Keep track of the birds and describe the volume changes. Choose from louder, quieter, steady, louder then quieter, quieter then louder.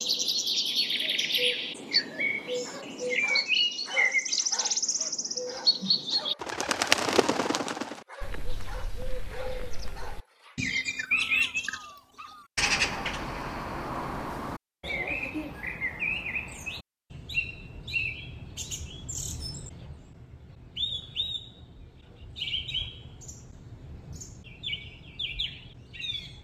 quieter.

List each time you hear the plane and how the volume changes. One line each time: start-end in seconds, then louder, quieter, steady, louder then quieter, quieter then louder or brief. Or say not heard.
not heard.